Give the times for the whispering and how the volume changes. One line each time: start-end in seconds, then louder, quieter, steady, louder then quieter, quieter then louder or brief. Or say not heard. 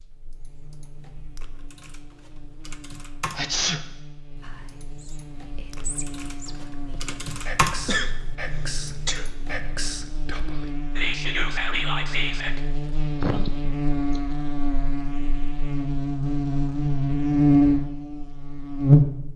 4.4-12.6 louder.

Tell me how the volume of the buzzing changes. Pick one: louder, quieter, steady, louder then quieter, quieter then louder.
louder.